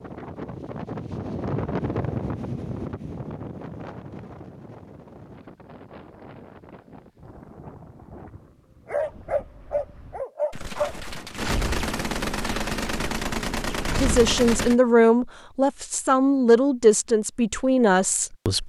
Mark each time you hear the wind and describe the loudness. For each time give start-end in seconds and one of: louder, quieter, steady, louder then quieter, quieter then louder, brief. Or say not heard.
0.0-10.2 quieter.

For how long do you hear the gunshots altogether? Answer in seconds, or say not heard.
4 s.